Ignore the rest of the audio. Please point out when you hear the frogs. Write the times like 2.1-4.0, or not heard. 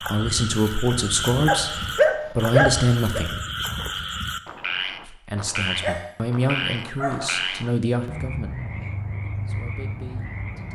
0.0-10.7.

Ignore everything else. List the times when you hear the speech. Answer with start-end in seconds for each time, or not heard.
0.1-3.4, 5.0-8.6, 9.4-10.7.